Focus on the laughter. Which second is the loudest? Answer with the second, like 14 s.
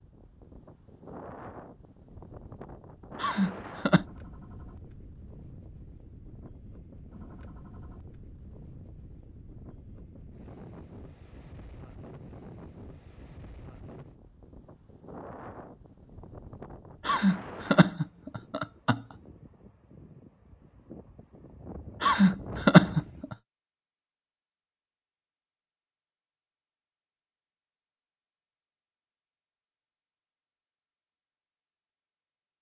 23 s.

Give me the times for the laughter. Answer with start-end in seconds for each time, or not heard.
3.2-4.0, 17.1-19.0, 22.0-23.4.